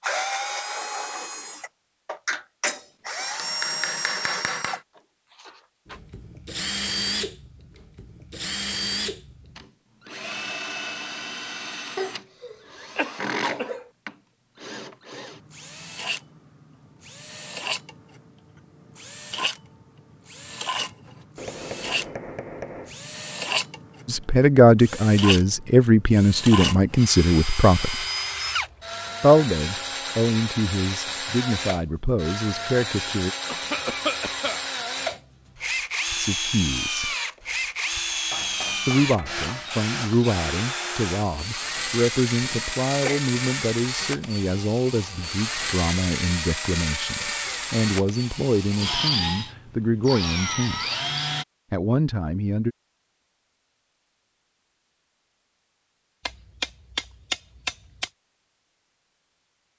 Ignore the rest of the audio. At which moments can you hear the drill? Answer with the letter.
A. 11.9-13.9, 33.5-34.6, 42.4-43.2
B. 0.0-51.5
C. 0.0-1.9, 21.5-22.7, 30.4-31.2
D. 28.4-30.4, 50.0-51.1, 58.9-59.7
B.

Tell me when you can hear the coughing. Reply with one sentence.
The coughing can be heard from 11.9 to 13.9 s, from 33.5 to 34.6 s and from 42.4 to 43.2 s.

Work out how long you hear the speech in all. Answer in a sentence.
You can hear the speech for 22 seconds altogether.